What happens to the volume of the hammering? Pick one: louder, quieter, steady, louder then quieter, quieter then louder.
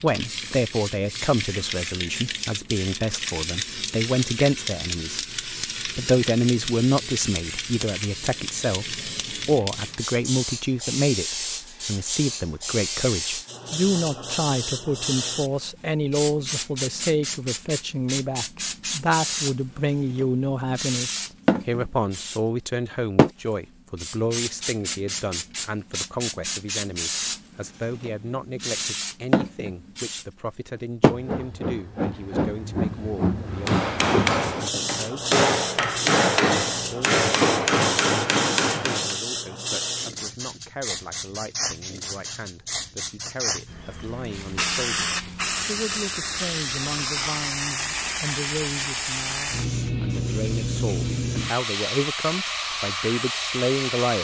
steady.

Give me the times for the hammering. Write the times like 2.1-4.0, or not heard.
33.5-39.2.